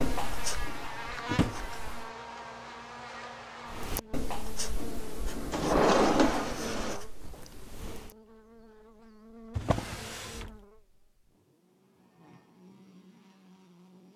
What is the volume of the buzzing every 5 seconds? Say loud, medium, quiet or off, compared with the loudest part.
loud, medium, quiet.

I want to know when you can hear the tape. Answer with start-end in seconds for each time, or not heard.
not heard.